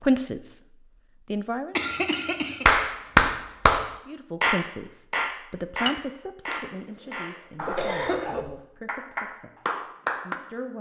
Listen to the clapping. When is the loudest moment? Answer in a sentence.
The volume of the clapping peaks at 3 seconds.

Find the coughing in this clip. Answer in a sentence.
You can hear the coughing from 1.8 to 2.6 s and from 6.5 to 8.4 s.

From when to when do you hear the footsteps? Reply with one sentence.
The footsteps can't be heard in this clip.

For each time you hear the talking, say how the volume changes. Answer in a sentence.
You can hear the talking briefly from 0.0 to 0.6 s; briefly from 1.3 to 1.8 s; and from 4.0 to 10.7 s, getting quieter.